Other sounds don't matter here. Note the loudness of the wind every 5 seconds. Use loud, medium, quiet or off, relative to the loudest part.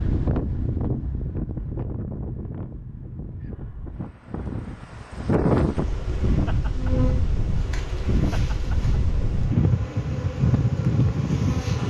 medium, loud, loud.